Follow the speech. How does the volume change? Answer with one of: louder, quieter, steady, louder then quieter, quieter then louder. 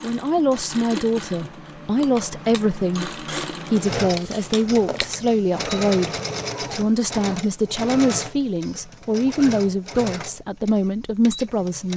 steady.